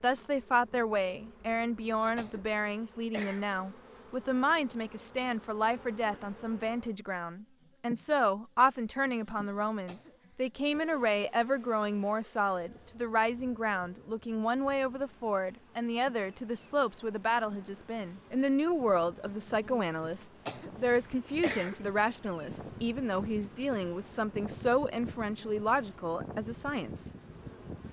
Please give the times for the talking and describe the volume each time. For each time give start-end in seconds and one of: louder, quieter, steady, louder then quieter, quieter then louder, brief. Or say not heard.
0.0-27.1 steady.